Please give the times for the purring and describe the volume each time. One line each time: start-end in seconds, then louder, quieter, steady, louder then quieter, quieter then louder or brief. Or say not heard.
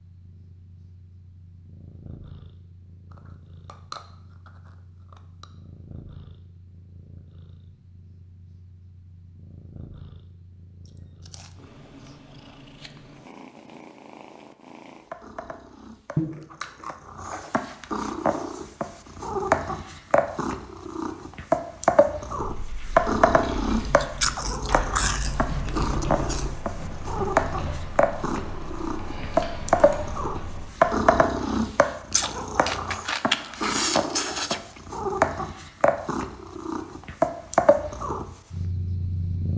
0.0-39.5 louder.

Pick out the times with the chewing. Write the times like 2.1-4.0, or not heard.
3.1-5.5, 10.8-12.6, 16.1-17.6, 23.8-26.6, 32.1-34.6.